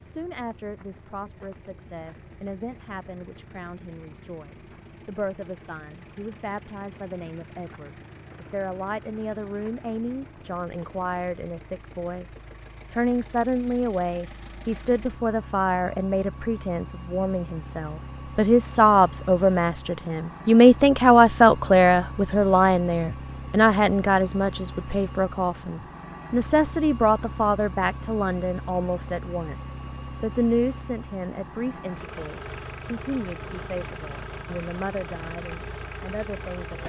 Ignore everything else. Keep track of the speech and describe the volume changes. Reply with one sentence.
The volume of the speech goes up, then down.